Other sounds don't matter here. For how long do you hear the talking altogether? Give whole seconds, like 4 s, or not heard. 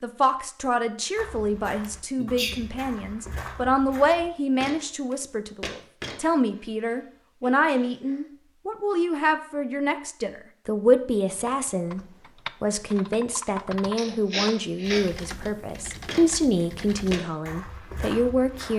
18 s.